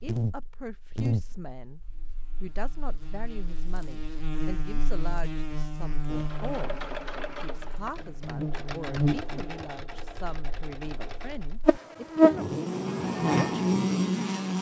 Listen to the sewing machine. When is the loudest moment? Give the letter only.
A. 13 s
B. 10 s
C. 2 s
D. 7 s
D.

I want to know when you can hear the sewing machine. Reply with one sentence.
You can hear the sewing machine from 6.1 to 11.6 s.